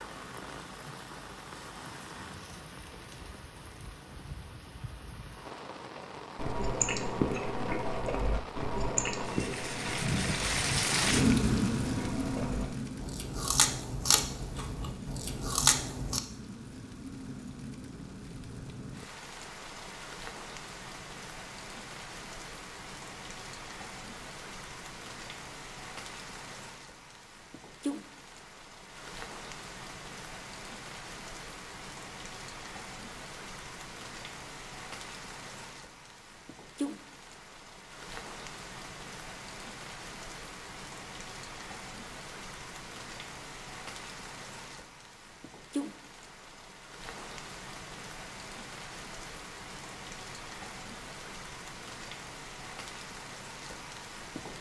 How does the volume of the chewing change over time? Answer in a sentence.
The loudness of the chewing goes down, then up.